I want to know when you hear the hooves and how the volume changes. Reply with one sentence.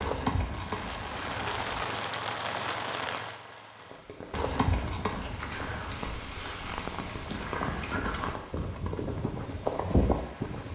The hooves can be heard briefly from 0.0 to 1.8 s; and from 4.3 to 10.7 s, getting quieter then louder.